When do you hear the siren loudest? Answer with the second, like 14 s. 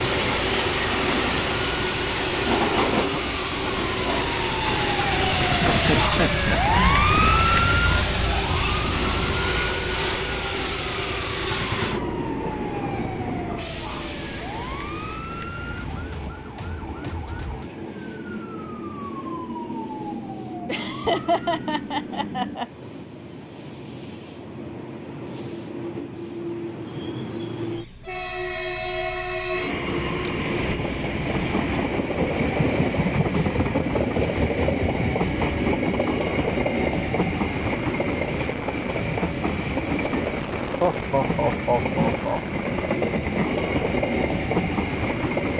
7 s.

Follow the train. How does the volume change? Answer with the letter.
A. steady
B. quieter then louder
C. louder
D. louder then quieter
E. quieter
B.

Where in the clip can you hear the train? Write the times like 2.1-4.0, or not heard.
0.0-45.5.